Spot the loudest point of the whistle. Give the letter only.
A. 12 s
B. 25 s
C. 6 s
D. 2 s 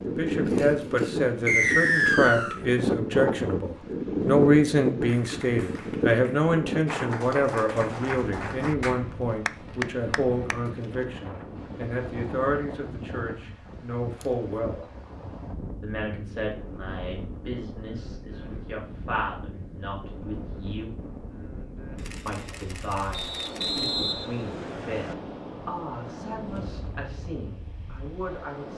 D.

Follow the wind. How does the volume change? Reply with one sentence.
The loudness of the wind goes down.